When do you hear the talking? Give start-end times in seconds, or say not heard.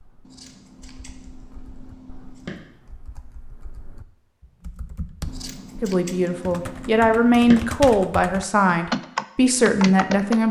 5.8-10.4.